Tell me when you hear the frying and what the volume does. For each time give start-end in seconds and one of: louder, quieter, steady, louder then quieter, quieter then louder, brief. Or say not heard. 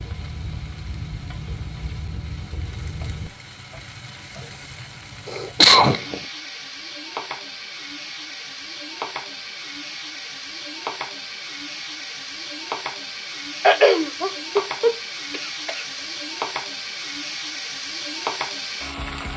0.0-19.3 louder.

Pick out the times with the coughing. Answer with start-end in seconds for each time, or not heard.
5.2-6.2, 13.6-15.8.